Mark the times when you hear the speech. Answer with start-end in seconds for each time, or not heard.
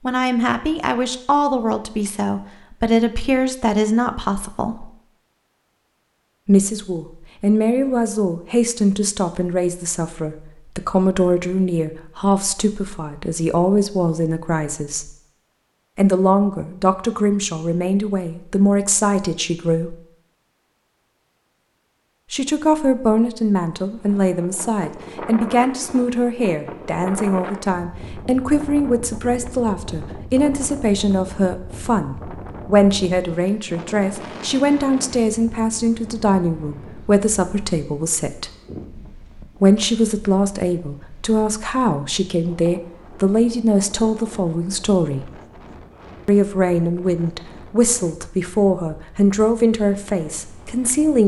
0.0-4.9, 6.5-15.1, 15.9-19.9, 22.3-38.5, 39.6-45.3, 46.2-51.2.